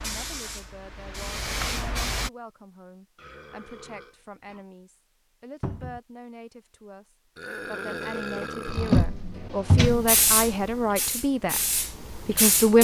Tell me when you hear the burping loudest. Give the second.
8 s.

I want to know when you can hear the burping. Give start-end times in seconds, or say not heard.
3.1-4.7, 7.3-9.1.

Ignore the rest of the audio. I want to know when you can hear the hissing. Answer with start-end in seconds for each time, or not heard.
0.0-2.3, 9.8-12.8.